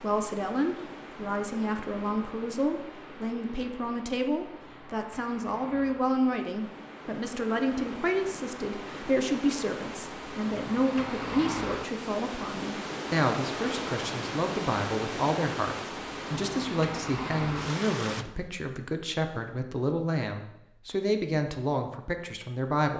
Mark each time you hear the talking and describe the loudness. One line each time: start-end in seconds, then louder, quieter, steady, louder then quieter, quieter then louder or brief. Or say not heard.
0.0-22.9 steady.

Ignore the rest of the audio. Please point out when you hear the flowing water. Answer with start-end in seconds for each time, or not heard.
0.0-18.2.